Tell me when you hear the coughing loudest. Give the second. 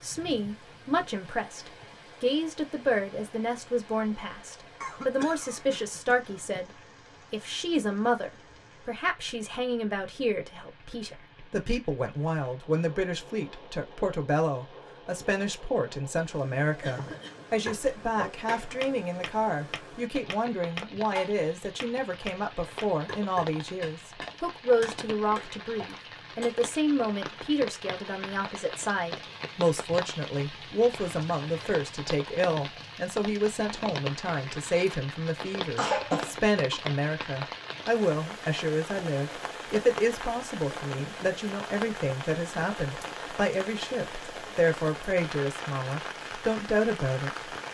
36 s.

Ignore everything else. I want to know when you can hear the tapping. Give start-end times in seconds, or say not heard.
17.6-27.1.